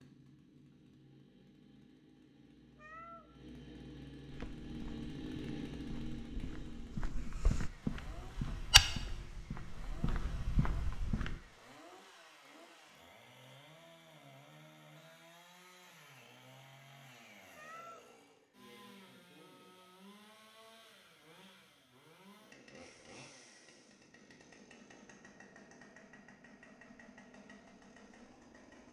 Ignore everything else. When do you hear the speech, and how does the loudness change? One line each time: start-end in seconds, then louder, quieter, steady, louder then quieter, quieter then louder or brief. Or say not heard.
not heard.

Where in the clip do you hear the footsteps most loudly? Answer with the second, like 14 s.
9 s.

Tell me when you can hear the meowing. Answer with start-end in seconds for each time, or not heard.
2.8-3.3, 17.6-18.1.